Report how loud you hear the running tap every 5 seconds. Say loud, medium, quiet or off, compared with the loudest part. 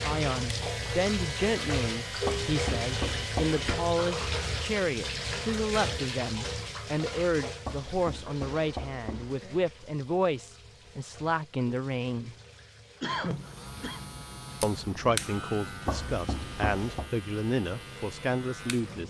loud, medium, quiet, quiet.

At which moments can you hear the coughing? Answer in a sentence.
The coughing can be heard from 13.0 to 14.0 s.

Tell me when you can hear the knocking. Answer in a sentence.
The knocking can be heard from 2.2 to 3.8 s, from 7.7 to 9.4 s and from 15.8 to 17.1 s.